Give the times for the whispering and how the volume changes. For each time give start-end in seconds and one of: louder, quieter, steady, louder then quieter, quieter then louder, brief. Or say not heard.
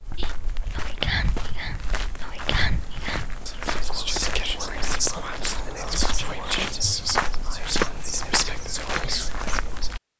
0.1-9.9 steady.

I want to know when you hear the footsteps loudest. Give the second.
8 s.